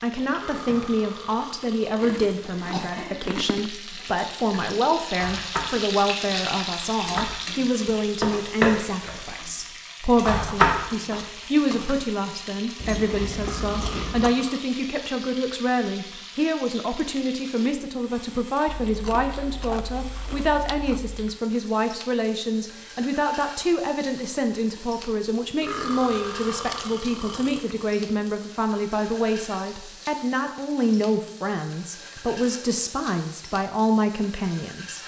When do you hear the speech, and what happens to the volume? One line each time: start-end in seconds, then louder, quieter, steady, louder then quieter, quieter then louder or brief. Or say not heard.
0.0-35.0 steady.